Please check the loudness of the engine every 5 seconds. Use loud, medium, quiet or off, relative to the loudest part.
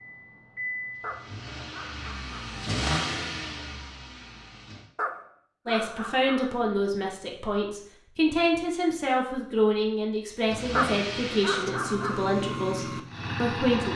loud, off, loud.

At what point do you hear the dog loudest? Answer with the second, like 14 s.
11 s.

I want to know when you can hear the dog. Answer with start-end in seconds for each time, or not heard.
1.0-2.5, 5.0-6.8, 10.8-12.2.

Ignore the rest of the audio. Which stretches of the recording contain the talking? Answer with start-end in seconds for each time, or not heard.
5.7-13.9.